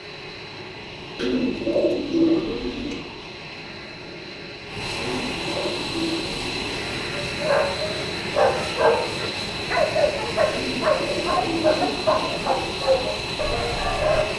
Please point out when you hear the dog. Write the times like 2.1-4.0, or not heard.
7.2-14.2.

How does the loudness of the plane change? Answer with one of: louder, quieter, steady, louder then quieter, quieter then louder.
louder.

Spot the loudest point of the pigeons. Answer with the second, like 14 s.
2 s.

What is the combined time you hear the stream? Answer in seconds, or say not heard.
not heard.